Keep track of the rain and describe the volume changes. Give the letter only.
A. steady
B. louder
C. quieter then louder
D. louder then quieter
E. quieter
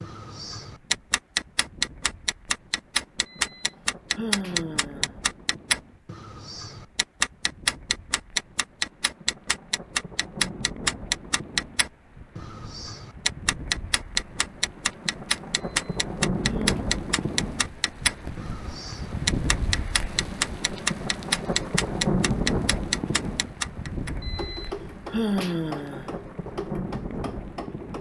B.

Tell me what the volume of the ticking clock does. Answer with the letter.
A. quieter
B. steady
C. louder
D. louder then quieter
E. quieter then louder
A.